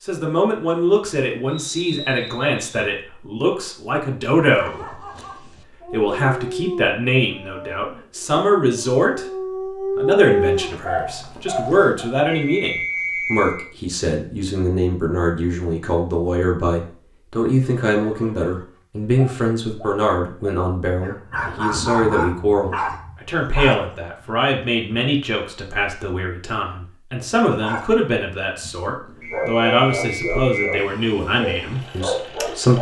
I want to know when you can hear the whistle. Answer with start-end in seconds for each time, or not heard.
1.4-3.0, 12.2-13.6, 29.2-30.9.